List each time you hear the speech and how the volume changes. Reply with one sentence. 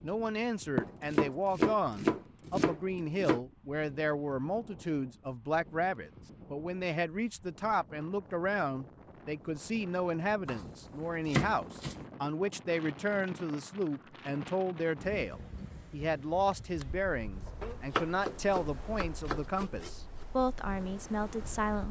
You can hear the speech from 0.0 to 21.8 s, at a steady volume.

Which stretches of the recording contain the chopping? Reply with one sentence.
The chopping can be heard from 0.8 to 3.4 s, from 10.4 to 12.0 s and from 17.6 to 19.9 s.